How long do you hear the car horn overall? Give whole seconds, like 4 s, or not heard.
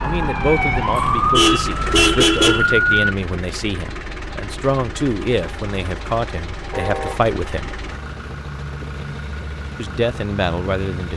2 s.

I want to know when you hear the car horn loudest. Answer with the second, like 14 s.
2 s.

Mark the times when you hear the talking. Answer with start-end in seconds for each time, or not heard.
0.0-7.8, 9.8-11.1.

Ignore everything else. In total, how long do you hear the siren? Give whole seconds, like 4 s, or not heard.
3 s.